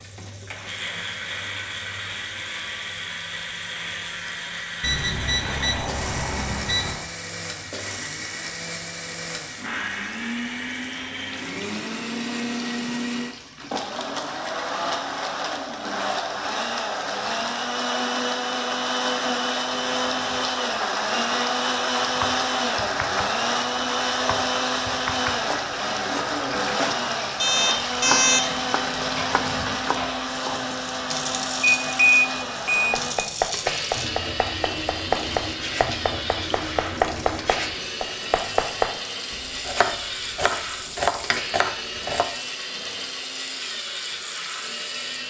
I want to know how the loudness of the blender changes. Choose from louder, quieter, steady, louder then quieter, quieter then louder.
louder then quieter.